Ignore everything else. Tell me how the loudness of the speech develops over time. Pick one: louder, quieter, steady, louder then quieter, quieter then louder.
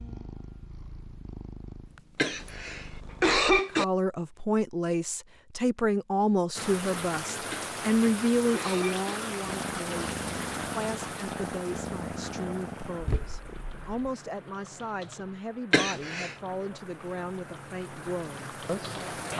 quieter.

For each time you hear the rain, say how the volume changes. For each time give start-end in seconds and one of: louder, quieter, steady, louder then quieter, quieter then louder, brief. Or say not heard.
6.5-19.3 quieter then louder.